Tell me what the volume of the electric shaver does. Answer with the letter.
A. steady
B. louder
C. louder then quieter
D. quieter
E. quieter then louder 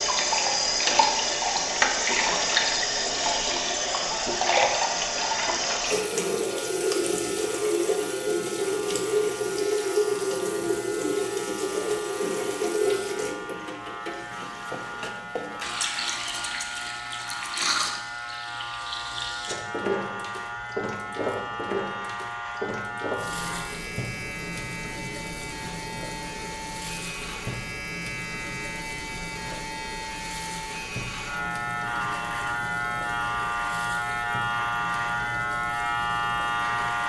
B.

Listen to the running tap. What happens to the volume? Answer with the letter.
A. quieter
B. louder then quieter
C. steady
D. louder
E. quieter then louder
A.